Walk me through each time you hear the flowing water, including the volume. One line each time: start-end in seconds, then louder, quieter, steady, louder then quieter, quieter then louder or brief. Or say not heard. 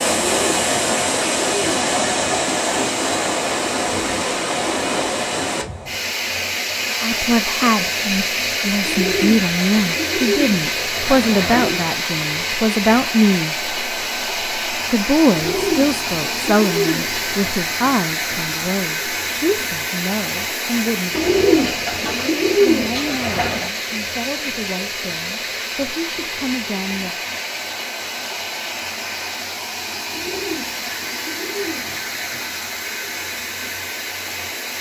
0.0-34.7 quieter.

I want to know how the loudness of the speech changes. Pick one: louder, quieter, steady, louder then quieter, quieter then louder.
quieter.